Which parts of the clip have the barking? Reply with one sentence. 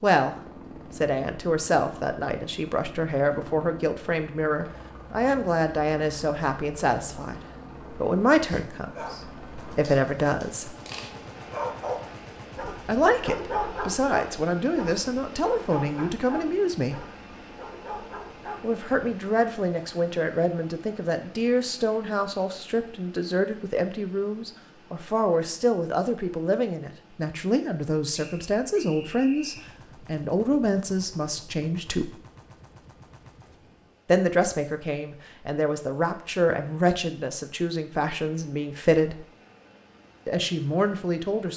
You can hear the barking from 8.4 to 19.1 s.